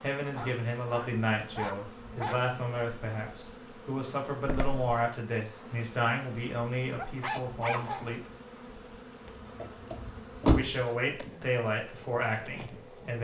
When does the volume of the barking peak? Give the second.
8 s.